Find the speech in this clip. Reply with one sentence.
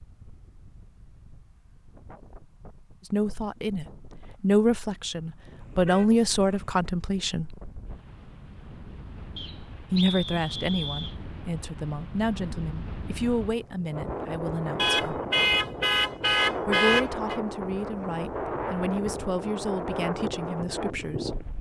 The speech can be heard from 3.0 to 7.5 s, from 9.9 to 15.2 s and from 16.6 to 21.4 s.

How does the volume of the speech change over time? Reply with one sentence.
The volume of the speech goes down.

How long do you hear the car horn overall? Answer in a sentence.
The car horn can be heard for 4 seconds in total.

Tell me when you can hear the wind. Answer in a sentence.
You can hear the wind from 0.0 to 21.5 s.